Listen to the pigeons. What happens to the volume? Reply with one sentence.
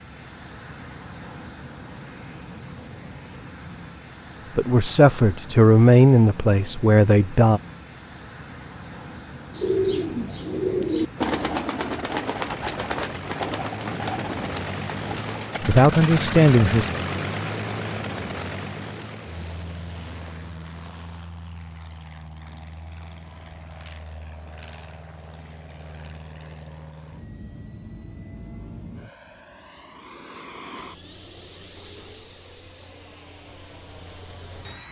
The loudness of the pigeons goes down.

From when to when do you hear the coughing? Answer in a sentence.
You can't hear the coughing here.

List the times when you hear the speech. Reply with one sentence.
The speech can be heard from 4.5 to 7.6 s and from 15.6 to 16.9 s.